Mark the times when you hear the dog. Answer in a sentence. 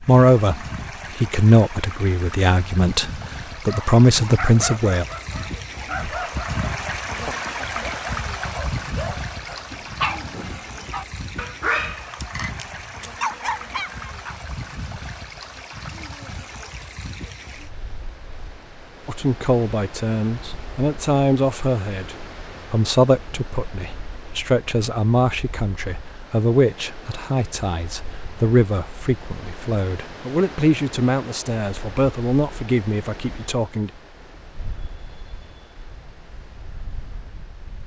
You can hear the dog from 3.5 to 14.3 s.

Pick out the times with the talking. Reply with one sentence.
You can hear the talking from 0.0 to 5.0 s and from 19.1 to 33.9 s.